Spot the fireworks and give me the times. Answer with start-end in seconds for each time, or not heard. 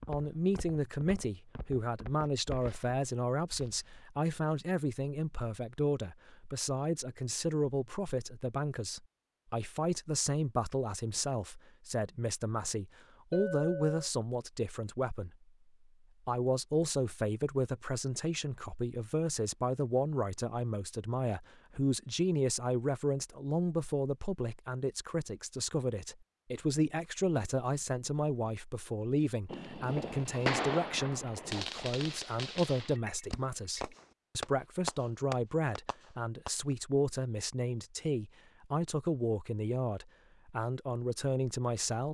29.5-36.5.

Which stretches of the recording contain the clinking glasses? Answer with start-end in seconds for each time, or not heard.
13.3-14.1, 33.0-34.0.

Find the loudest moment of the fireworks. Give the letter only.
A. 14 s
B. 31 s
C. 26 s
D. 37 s
B.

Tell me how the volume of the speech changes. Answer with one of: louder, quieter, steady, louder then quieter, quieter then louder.
steady.